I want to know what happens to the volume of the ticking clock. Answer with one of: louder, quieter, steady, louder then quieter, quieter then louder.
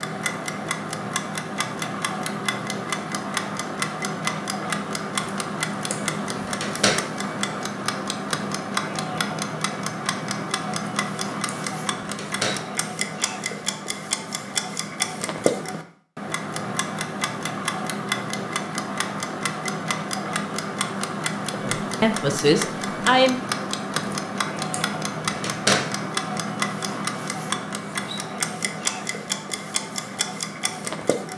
steady.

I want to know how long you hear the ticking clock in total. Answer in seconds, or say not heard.
31 s.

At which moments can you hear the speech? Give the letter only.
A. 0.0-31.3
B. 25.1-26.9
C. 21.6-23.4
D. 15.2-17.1
C.